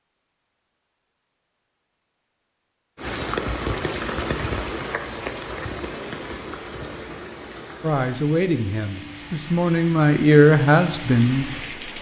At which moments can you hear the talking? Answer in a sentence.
You can hear the talking from 7.8 to 11.8 s.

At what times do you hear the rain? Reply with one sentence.
You can hear the rain from 3.0 to 11.9 s.